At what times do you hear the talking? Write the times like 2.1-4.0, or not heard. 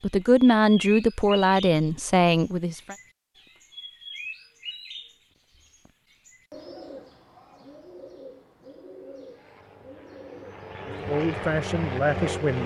0.0-3.0, 10.8-12.6.